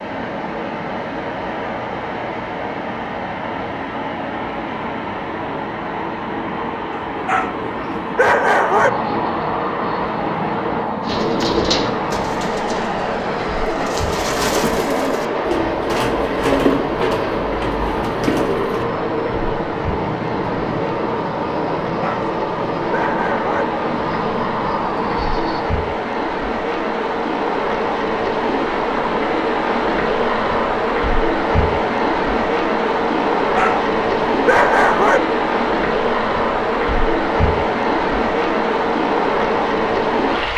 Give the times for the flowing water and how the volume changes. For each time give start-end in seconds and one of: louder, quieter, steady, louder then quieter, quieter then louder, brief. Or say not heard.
0.0-40.5 louder.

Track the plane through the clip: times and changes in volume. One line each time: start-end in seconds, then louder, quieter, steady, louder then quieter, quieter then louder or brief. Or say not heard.
8.6-25.6 steady.